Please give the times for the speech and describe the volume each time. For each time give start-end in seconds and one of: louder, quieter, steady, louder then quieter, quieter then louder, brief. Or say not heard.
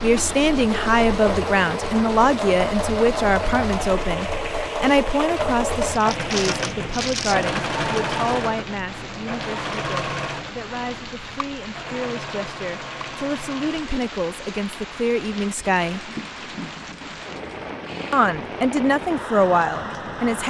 0.0-16.0 quieter then louder
18.1-20.4 brief.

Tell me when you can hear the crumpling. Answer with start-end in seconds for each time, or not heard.
5.9-7.5.